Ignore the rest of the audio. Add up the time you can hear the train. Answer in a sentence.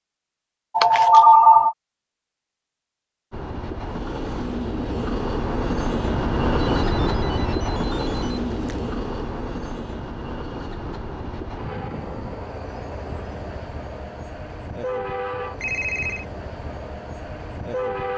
The train can be heard for 15 seconds in total.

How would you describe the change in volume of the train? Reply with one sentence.
The volume of the train goes down.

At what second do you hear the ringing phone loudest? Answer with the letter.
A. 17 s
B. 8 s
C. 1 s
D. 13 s
C.